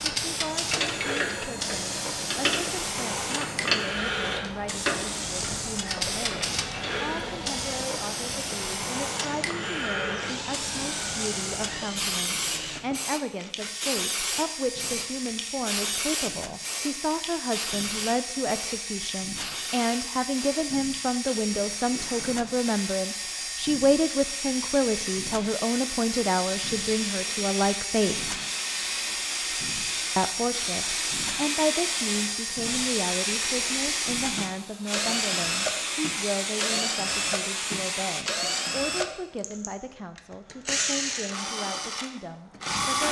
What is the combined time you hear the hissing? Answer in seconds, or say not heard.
38 s.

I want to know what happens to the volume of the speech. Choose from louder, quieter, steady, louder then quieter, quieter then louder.
louder then quieter.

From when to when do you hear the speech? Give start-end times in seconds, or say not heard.
0.2-28.4, 30.1-43.0.